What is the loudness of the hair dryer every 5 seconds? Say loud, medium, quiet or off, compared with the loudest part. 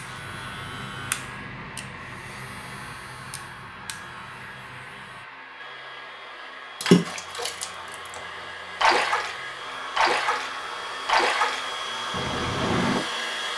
medium, medium, loud.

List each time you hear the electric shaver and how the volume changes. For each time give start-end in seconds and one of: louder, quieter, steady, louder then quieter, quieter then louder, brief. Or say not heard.
0.0-5.2 quieter.